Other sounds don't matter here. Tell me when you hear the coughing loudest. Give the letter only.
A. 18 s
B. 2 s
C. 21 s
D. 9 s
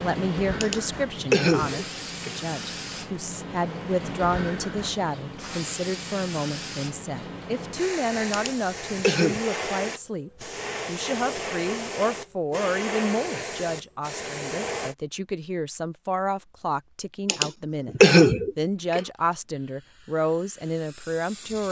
A.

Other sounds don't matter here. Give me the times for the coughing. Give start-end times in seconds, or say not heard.
0.6-2.4, 8.3-9.4, 17.2-19.0.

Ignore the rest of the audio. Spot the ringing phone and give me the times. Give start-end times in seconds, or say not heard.
not heard.